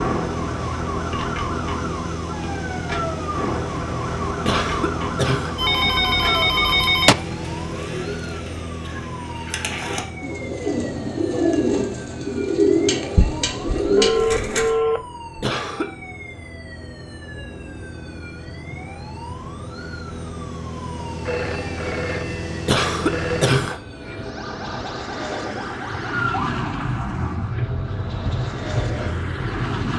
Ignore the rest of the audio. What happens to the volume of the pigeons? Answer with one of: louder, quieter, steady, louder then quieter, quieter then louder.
louder.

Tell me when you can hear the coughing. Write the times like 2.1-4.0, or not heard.
4.5-5.5, 15.4-15.8, 22.6-23.8.